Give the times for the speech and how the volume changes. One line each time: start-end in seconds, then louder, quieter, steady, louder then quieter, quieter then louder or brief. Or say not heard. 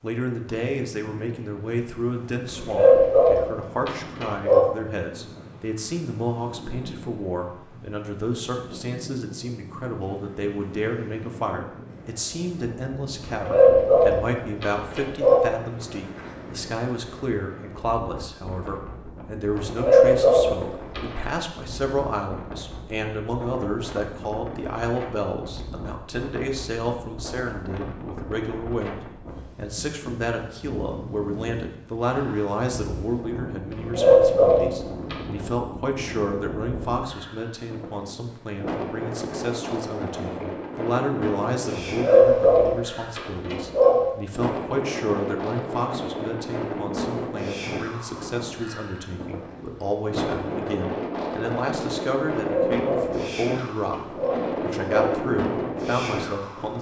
0.0-56.7 steady.